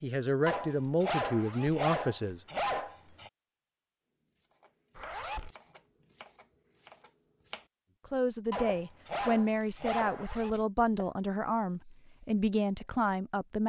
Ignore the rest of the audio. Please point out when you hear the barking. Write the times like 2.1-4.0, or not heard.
0.5-3.3, 8.5-10.6.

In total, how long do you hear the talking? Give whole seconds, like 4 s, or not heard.
8 s.